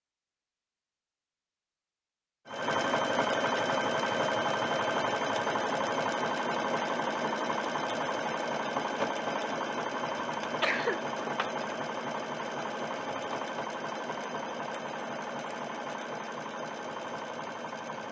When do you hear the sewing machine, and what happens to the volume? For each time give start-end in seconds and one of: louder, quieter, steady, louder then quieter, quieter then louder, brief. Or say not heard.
2.5-18.0 quieter.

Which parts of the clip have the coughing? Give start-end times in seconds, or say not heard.
10.6-11.1.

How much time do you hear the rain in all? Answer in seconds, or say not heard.
not heard.